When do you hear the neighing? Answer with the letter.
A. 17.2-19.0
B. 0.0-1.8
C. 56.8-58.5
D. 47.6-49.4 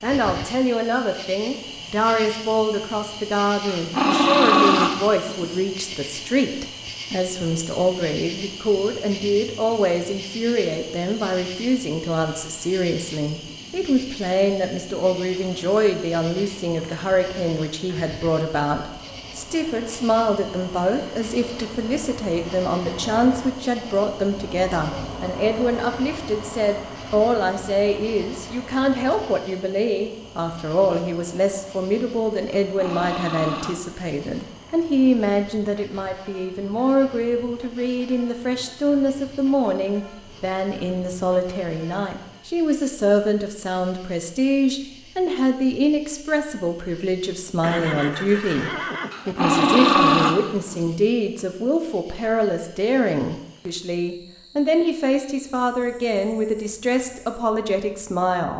D.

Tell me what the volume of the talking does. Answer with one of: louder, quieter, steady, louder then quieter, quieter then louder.
steady.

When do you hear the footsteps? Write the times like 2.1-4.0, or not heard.
not heard.